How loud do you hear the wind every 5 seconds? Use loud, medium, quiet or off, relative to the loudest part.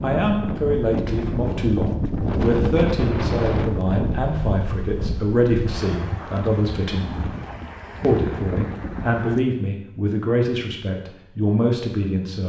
loud, medium, off.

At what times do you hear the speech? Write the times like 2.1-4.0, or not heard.
0.0-7.2, 8.0-12.4.